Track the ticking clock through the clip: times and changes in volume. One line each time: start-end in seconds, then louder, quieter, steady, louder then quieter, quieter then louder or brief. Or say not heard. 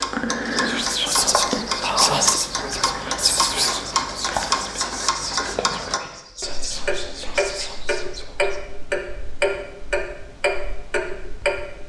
0.0-11.8 steady.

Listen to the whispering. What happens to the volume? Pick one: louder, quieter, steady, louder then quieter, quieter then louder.
quieter.